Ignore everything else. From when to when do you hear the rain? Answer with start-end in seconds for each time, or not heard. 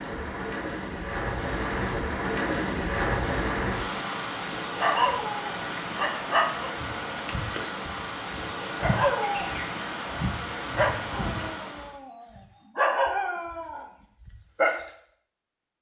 0.0-11.9.